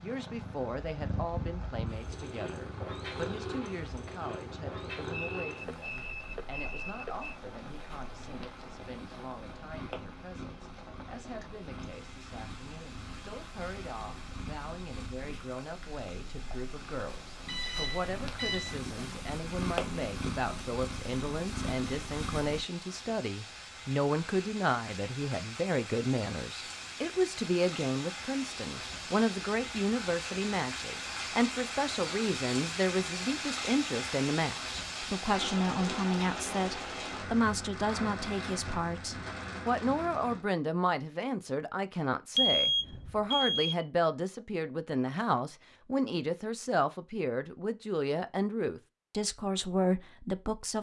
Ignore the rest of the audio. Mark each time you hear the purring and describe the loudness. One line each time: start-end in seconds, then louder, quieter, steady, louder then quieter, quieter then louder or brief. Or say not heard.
0.0-22.6 quieter then louder.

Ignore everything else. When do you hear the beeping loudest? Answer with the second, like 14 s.
43 s.